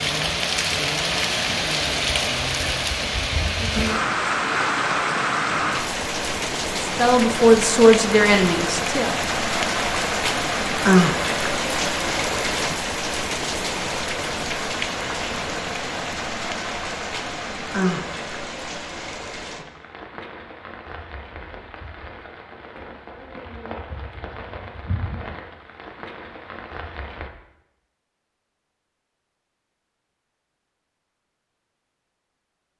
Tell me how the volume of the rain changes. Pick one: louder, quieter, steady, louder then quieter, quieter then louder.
quieter.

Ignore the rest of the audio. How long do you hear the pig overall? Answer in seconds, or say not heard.
not heard.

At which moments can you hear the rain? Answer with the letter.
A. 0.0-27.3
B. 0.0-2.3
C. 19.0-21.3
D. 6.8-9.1
A.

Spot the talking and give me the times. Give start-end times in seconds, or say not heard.
6.8-9.1.